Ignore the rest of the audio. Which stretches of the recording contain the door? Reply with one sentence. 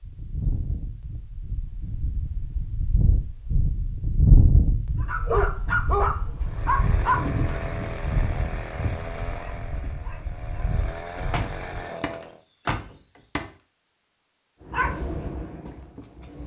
The door can be heard from 11.2 to 13.5 s.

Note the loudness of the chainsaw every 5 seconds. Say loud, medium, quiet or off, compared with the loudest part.
off, loud, loud, off.